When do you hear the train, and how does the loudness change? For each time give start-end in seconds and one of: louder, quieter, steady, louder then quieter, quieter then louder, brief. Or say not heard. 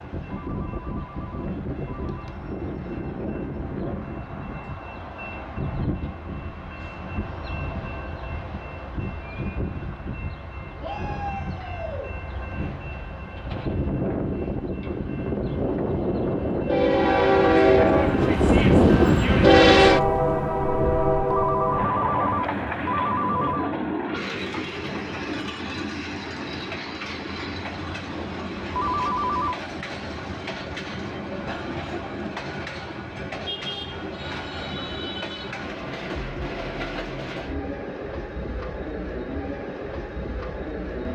0.0-41.0 louder then quieter.